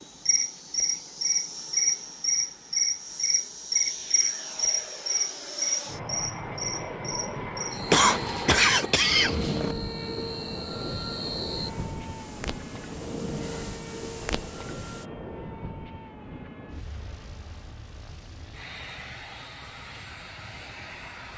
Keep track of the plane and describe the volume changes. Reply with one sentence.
The volume of the plane goes up, then down.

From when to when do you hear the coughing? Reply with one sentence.
The coughing can be heard from 7.9 to 9.8 s.